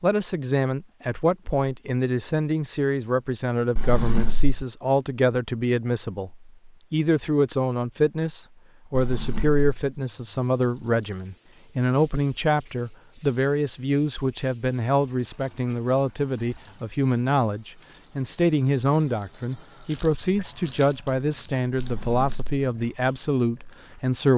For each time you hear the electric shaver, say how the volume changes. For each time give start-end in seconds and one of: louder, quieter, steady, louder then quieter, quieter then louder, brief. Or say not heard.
not heard.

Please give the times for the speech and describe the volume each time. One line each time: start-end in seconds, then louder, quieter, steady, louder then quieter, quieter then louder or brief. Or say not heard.
0.0-24.3 steady.